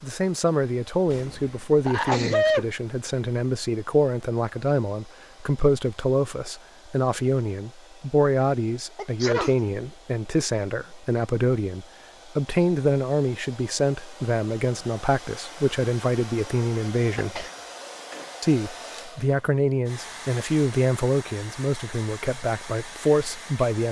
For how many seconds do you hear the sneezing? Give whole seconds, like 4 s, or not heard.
3 s.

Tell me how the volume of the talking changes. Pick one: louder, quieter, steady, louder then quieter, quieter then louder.
steady.